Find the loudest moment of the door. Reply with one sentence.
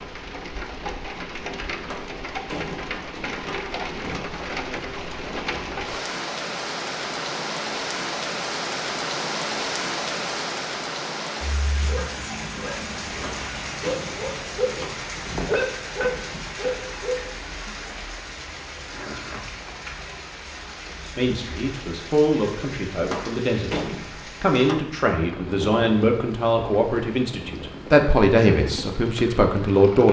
The volume of the door peaks at 24 seconds.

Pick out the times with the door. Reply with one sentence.
You can hear the door from 1.8 to 4.2 s, from 13.1 to 15.0 s and from 22.9 to 25.0 s.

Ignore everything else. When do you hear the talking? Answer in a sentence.
The talking can be heard from 20.9 to 23.8 s and from 24.4 to 30.0 s.